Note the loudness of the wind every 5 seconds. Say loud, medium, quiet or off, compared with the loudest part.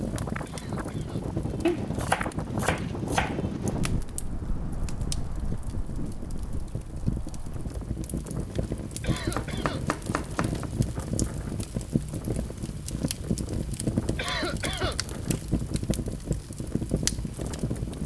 loud, medium, medium, medium.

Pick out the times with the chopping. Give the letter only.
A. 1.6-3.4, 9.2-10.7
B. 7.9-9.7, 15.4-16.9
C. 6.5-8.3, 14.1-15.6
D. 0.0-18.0
A.